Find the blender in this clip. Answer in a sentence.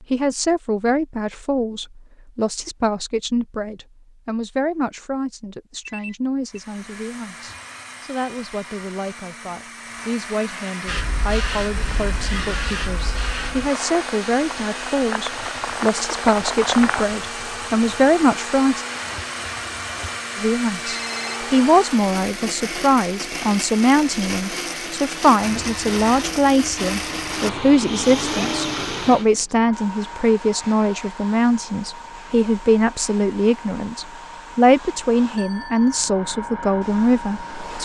You can hear the blender from 6.5 to 29.2 s.